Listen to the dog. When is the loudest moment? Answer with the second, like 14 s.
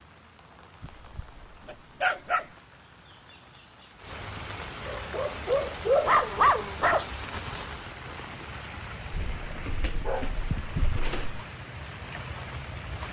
6 s.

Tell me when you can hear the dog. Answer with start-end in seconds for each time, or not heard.
0.8-2.5, 4.8-7.0, 9.1-11.4.